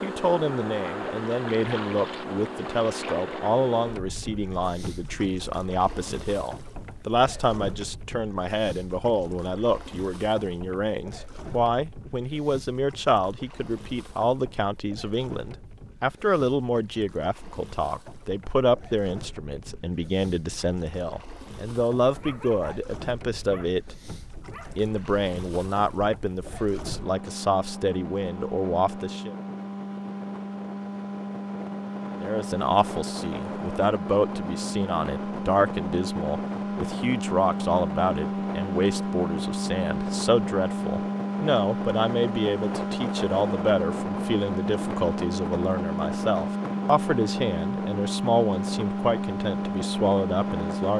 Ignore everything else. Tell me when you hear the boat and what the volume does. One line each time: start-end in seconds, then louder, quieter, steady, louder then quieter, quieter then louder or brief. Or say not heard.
0.0-50.9 quieter then louder.